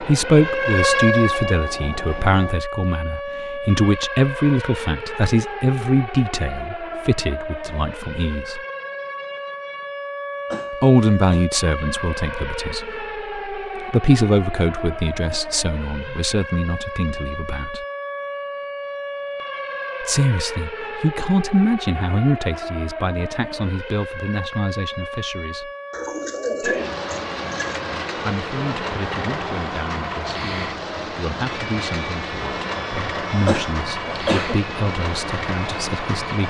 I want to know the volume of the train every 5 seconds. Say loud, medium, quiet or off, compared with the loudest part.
medium, off, off, off, off, loud, loud, loud.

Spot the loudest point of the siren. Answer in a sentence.
The loudest moment of the siren is at 1 second.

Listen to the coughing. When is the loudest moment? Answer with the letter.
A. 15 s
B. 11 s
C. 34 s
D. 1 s
C.